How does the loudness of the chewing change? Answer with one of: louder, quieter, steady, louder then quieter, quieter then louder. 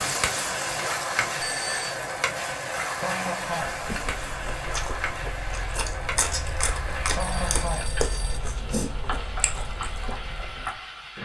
louder then quieter.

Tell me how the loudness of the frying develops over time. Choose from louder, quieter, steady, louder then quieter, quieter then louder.
quieter.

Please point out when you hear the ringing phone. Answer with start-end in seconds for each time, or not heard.
1.4-1.9, 7.2-8.4.